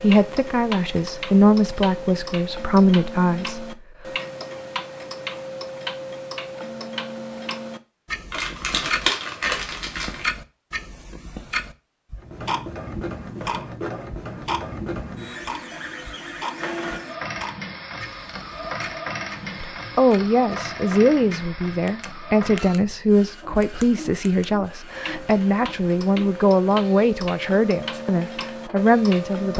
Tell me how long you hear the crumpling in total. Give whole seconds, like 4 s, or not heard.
2 s.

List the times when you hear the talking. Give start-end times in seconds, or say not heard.
0.0-3.8, 19.6-29.5.